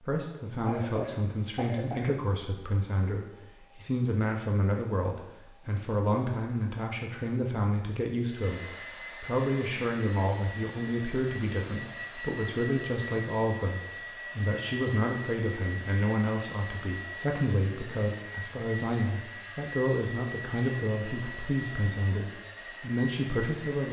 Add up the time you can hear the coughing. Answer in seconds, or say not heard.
2 s.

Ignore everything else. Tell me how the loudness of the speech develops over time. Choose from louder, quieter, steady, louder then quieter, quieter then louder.
steady.